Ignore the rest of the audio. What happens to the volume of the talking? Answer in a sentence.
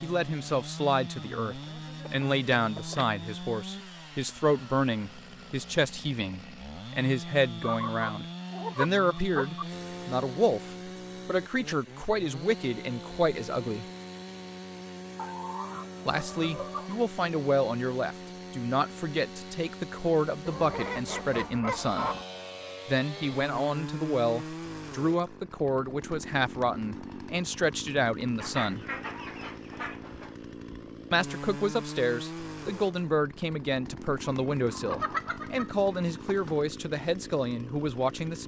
The volume of the talking stays about the same.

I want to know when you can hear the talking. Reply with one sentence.
You can hear the talking from 0.0 to 13.8 s, from 16.1 to 22.1 s, from 22.9 to 28.9 s and from 31.1 to 38.4 s.